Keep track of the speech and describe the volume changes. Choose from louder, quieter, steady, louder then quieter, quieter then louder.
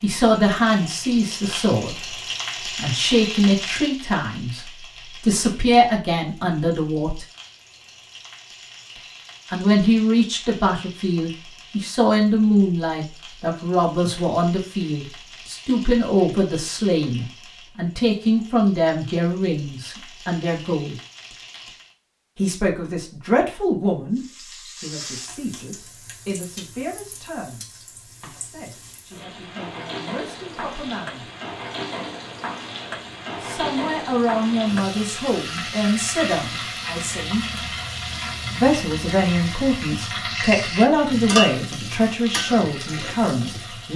quieter then louder.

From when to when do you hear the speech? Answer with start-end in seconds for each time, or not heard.
0.0-7.2, 9.5-20.9, 22.4-31.2, 33.4-37.5, 38.5-43.9.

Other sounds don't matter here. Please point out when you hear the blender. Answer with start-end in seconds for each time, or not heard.
not heard.